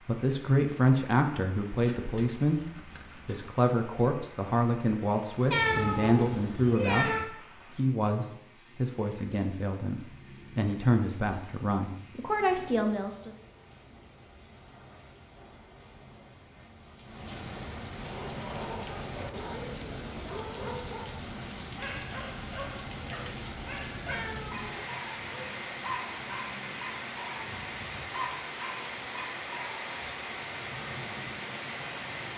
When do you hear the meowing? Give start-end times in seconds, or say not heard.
5.5-7.2, 24.1-25.6.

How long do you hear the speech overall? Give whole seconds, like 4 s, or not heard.
13 s.